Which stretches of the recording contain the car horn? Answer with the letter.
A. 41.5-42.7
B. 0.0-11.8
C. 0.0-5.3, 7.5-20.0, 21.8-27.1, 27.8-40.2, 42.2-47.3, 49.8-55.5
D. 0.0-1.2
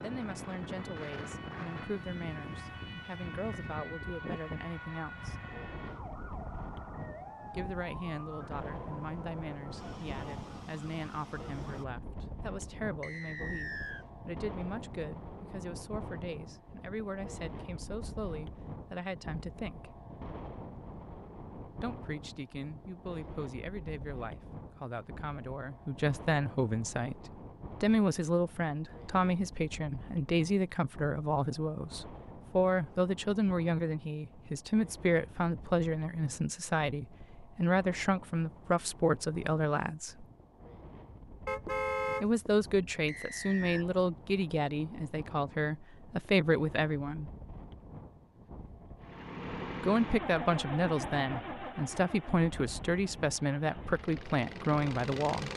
A.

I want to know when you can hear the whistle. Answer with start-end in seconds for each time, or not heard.
13.0-14.1, 43.0-43.9.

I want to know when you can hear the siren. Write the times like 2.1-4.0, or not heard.
0.0-11.8.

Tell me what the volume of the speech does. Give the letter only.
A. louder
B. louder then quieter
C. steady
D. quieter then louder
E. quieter
A.